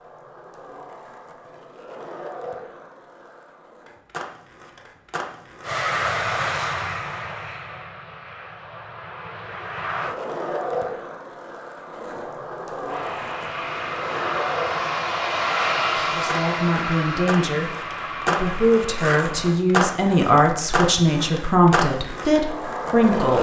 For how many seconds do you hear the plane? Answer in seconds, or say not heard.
11 s.